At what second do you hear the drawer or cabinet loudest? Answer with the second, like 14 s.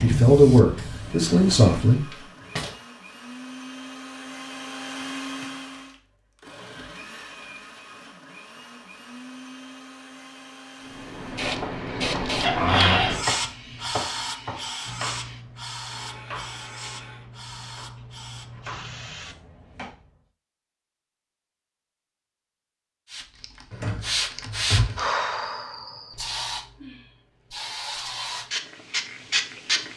13 s.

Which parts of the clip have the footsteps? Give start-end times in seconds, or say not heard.
not heard.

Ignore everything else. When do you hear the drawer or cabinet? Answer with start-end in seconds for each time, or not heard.
1.1-2.8, 12.4-13.2, 23.7-25.1.